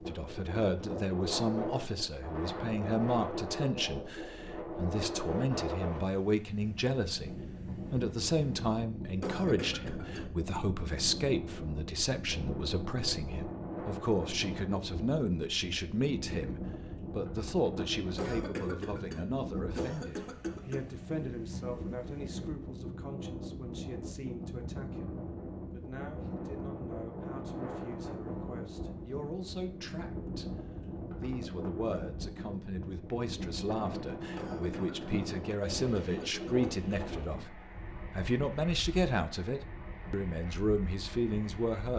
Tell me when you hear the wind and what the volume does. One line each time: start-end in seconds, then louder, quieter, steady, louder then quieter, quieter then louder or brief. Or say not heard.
0.0-41.9 steady.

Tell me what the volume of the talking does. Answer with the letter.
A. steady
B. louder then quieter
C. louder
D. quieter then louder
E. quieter
D.